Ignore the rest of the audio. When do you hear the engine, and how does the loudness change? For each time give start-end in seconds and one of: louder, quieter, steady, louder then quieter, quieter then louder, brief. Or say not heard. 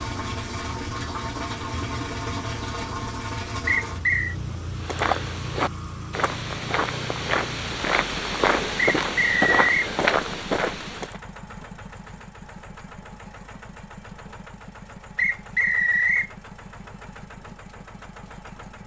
0.0-18.8 quieter.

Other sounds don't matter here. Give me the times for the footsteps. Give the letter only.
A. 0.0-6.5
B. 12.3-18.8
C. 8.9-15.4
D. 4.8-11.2
D.